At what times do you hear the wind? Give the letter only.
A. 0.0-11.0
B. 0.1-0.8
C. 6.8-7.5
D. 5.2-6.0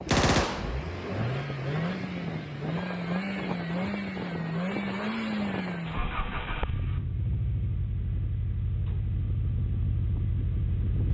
A.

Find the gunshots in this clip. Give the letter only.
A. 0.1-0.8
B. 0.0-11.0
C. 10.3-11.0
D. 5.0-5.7
A.